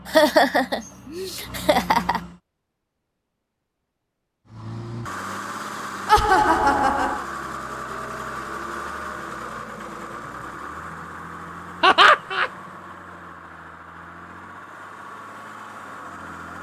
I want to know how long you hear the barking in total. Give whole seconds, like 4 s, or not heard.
not heard.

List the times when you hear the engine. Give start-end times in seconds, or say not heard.
0.0-2.4, 4.5-16.5.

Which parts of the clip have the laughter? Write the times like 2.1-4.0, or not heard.
0.1-2.2, 6.0-7.2, 11.8-12.5.